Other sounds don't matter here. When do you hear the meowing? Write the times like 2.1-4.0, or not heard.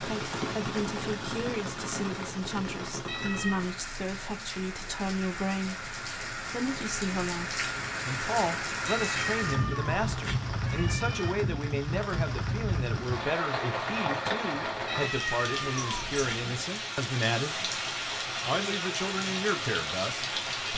3.0-3.7, 8.8-11.3, 14.8-16.6.